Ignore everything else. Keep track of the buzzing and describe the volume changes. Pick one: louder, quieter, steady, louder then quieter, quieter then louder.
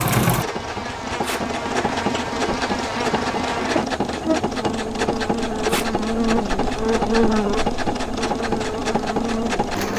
louder then quieter.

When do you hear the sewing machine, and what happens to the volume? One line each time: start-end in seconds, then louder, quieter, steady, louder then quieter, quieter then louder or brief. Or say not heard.
0.0-9.9 steady.